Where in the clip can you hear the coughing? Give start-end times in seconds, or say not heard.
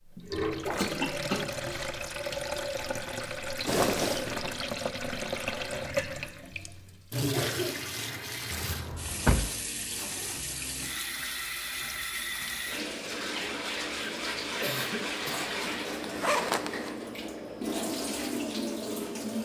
0.7-1.9, 7.3-8.2, 14.6-15.6.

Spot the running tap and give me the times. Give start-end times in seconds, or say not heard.
0.0-19.4.